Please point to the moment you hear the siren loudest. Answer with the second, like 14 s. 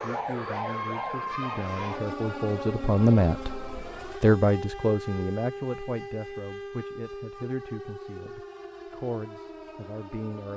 1 s.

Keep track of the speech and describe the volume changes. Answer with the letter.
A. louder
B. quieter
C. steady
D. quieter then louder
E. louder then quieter
E.